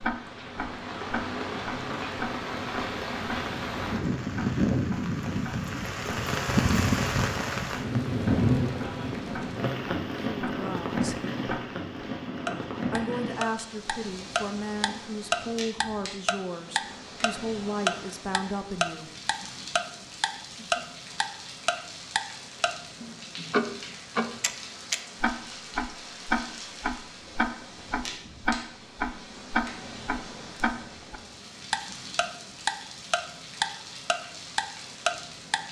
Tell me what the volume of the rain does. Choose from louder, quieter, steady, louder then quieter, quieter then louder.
quieter.